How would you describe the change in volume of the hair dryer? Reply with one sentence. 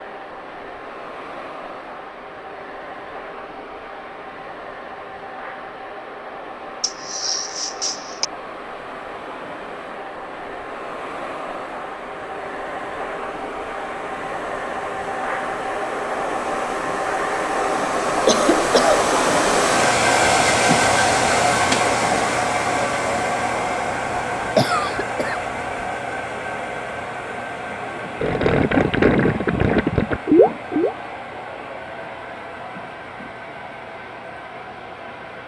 The loudness of the hair dryer goes up, then down.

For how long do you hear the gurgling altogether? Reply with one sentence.
You can hear the gurgling for 3 seconds altogether.